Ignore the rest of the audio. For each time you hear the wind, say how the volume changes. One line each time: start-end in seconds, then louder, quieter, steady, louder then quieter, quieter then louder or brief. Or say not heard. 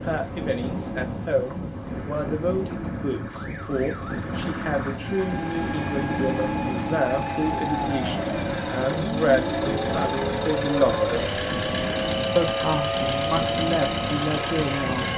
0.0-15.1 steady.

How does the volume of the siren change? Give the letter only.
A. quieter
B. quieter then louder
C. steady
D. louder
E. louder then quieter
D.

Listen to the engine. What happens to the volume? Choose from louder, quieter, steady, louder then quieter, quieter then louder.
louder.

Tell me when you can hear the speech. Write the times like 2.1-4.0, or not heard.
0.0-11.2, 12.3-15.1.